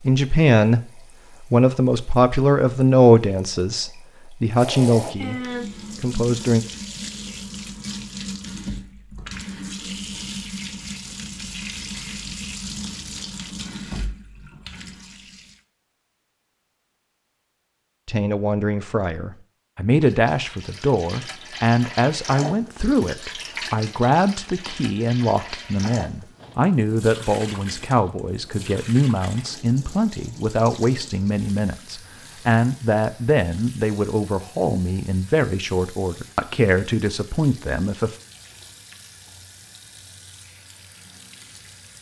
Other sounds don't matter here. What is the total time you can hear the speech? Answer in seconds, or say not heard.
26 s.